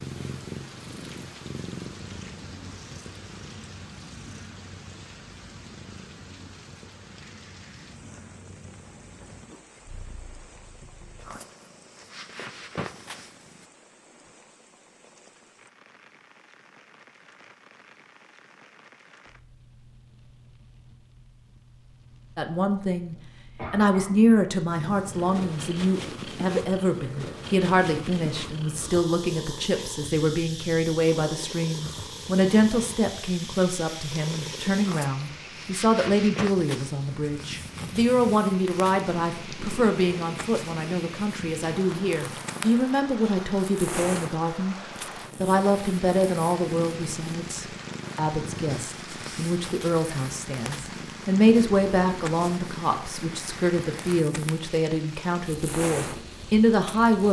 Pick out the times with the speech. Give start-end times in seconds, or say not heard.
22.4-44.8, 45.4-57.2.